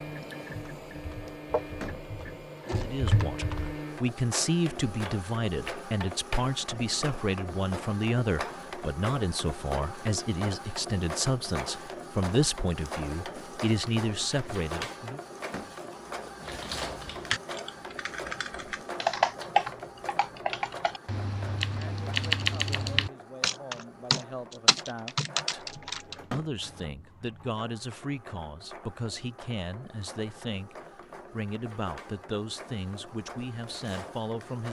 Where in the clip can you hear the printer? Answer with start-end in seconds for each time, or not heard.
0.0-34.6.